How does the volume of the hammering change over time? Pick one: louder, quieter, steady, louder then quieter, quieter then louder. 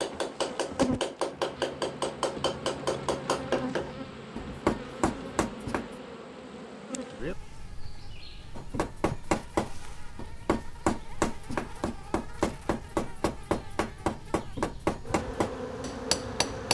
steady.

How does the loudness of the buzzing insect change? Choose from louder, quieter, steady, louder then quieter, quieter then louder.
quieter then louder.